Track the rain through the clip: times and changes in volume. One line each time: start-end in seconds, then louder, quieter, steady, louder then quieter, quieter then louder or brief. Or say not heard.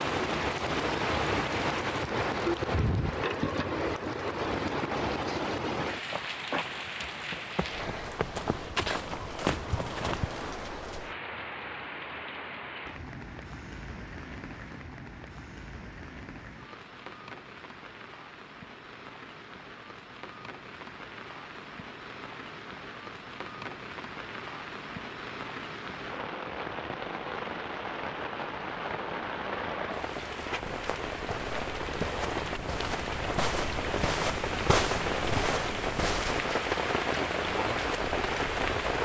0.0-39.0 quieter then louder.